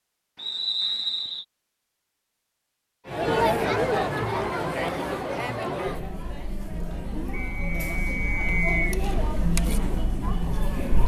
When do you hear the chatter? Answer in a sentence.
The chatter can be heard from 3.0 to 11.0 s.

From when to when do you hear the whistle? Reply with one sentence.
The whistle can be heard from 0.3 to 1.4 s and from 7.3 to 8.8 s.